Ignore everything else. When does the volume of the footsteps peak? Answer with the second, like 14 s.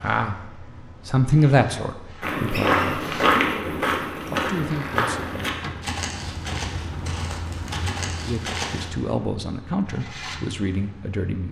3 s.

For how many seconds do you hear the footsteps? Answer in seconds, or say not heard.
7 s.